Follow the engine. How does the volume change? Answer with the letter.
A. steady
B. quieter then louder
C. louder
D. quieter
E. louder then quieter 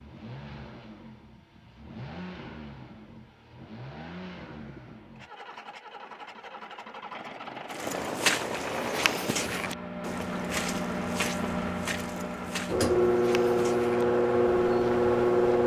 C.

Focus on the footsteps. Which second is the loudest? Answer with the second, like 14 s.
8 s.